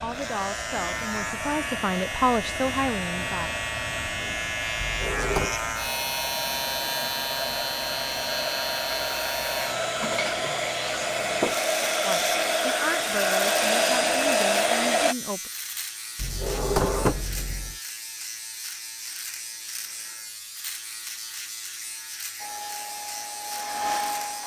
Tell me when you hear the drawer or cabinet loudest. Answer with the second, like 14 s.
17 s.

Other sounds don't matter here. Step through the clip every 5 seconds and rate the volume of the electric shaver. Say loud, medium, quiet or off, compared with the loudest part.
loud, loud, loud, medium, medium.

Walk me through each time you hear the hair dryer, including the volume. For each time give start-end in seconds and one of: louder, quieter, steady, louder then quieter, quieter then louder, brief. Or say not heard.
0.0-15.2 louder
22.4-24.4 brief.